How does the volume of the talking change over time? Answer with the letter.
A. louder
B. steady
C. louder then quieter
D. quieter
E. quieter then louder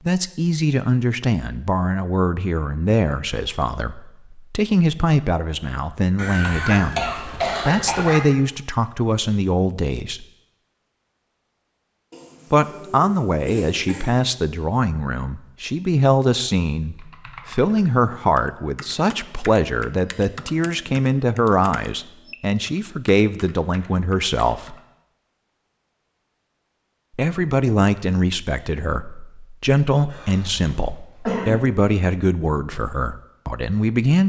B.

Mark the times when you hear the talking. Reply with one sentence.
The talking can be heard from 0.1 to 10.2 s, from 12.5 to 24.8 s and from 27.1 to 34.2 s.